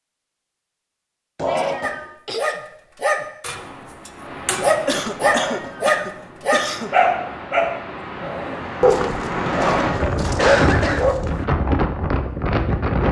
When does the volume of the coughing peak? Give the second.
11 s.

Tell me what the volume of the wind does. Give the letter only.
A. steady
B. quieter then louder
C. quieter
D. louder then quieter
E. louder
E.